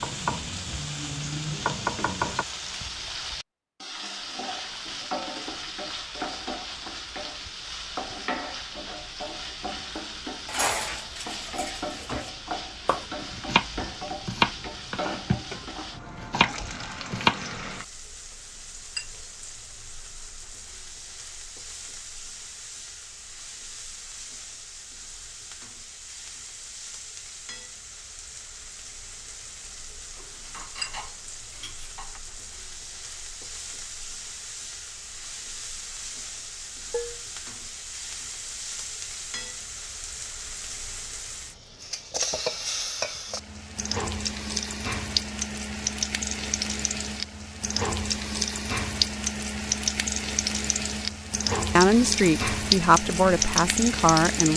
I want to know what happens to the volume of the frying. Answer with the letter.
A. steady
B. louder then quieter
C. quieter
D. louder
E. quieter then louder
E.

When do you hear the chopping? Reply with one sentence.
The chopping can be heard from 0.0 to 2.5 s and from 12.8 to 17.4 s.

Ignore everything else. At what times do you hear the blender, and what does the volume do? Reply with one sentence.
The blender can't be heard in this clip.